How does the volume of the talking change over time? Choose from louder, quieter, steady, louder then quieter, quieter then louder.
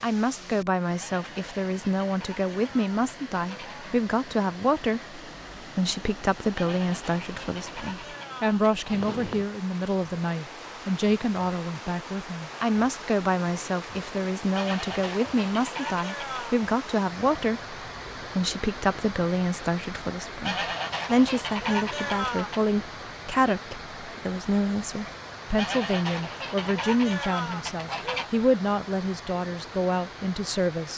steady.